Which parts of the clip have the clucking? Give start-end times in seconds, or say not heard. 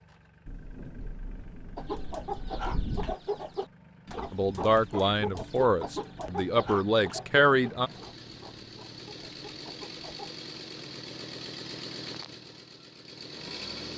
1.8-10.3.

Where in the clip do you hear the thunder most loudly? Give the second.
3 s.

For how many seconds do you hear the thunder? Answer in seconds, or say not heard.
3 s.